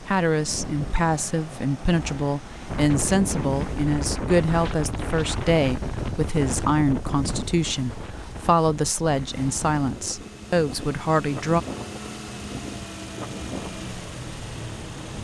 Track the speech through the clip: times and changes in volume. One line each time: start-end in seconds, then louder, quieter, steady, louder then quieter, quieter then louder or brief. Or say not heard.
0.1-11.6 steady.